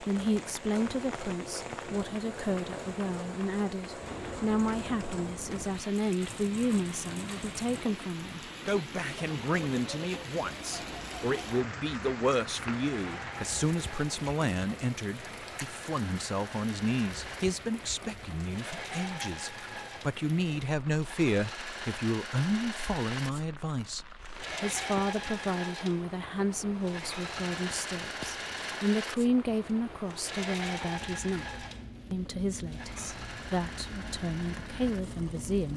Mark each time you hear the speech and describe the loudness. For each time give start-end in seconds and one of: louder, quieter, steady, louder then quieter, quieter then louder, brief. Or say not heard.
0.0-35.7 steady.